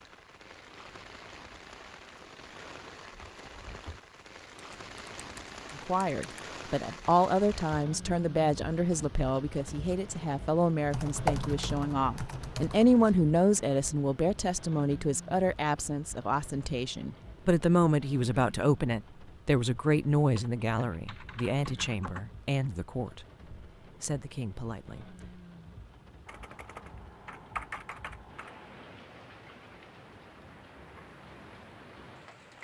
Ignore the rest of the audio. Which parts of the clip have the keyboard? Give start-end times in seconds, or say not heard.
4.5-6.4, 10.9-13.1, 20.3-22.2, 26.2-28.7.